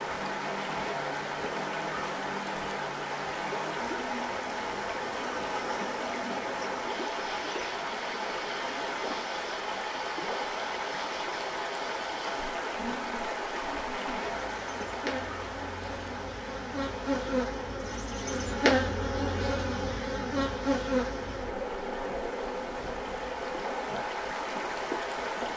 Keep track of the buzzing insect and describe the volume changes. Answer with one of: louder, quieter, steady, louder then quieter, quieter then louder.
louder.